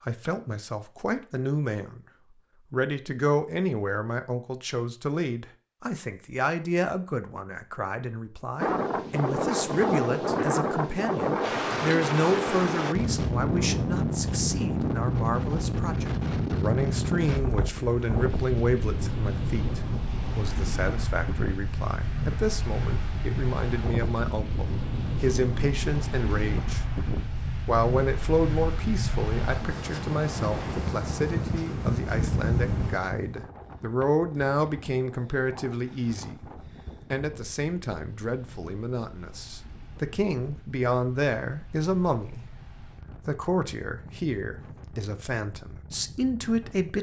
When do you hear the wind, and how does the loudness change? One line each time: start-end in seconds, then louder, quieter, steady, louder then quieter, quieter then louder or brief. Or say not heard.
8.6-46.9 quieter.